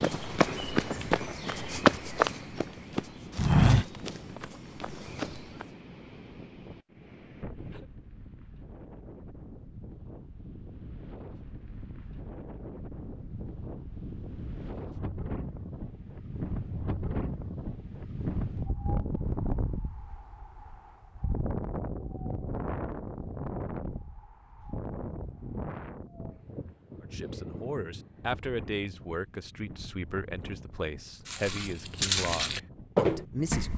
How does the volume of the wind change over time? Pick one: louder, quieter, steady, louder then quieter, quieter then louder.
louder then quieter.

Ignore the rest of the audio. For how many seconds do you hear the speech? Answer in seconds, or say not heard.
7 s.